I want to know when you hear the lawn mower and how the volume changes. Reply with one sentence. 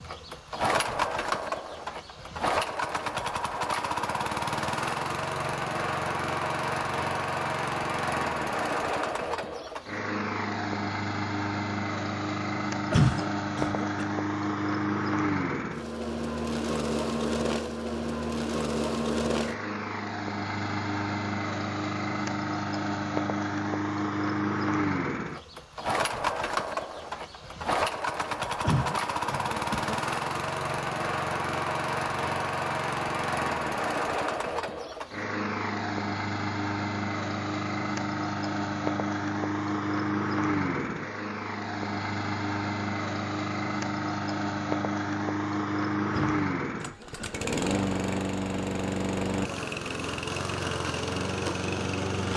The lawn mower can be heard from 0.0 to 52.3 s, at a steady volume.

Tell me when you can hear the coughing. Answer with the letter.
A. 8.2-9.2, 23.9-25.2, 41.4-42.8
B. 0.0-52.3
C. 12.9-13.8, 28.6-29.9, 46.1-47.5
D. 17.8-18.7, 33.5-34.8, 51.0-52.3
C.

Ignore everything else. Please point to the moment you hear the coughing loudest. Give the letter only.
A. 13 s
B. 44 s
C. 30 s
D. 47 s
A.